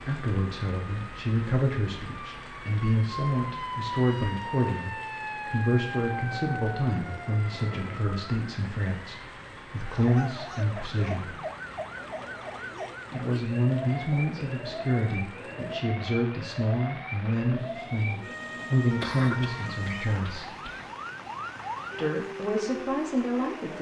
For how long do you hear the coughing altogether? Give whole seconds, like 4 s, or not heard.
2 s.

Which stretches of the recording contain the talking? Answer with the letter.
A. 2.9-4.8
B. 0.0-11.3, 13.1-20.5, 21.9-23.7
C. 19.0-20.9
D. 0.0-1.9
B.